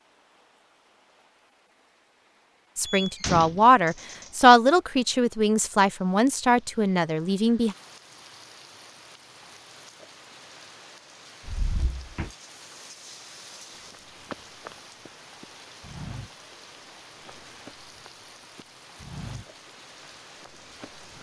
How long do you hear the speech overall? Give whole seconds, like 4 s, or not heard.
5 s.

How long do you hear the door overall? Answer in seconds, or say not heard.
2 s.